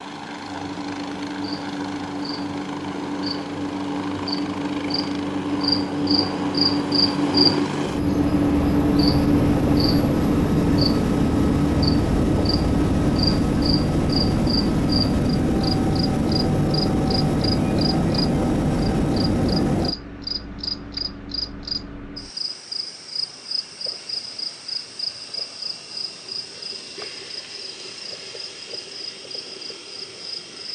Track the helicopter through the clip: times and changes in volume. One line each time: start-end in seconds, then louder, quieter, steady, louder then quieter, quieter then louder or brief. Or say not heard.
0.0-19.9 louder.